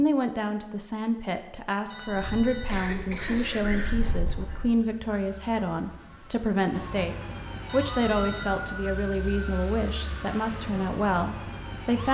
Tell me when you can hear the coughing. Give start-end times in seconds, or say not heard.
2.6-4.0.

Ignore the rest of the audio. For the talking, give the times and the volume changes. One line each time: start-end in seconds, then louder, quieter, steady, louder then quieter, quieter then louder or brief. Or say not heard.
0.0-12.0 steady.